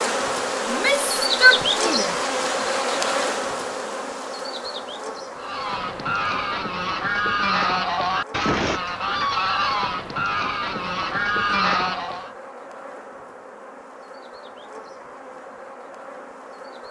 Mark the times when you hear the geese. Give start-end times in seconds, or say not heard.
5.3-12.3.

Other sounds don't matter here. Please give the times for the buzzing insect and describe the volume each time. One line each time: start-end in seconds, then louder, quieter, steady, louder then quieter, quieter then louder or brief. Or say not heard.
0.0-16.8 quieter.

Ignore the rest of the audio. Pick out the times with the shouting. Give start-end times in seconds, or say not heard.
0.7-2.1.